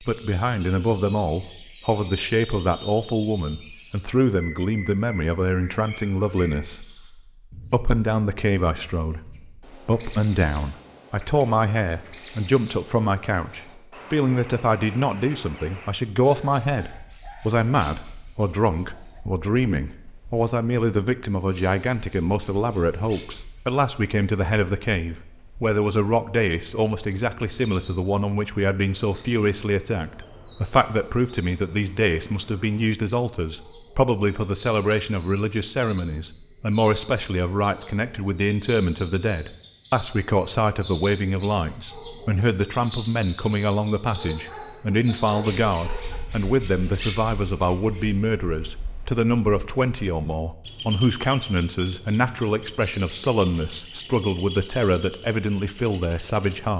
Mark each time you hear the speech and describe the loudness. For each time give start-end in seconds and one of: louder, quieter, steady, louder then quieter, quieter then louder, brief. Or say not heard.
0.0-56.7 steady.